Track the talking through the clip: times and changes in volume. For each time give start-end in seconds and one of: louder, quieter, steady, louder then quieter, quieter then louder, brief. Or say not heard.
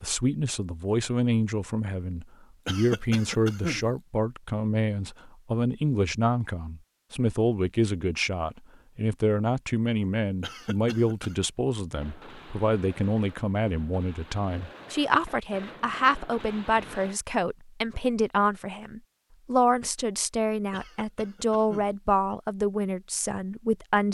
0.0-24.0 steady.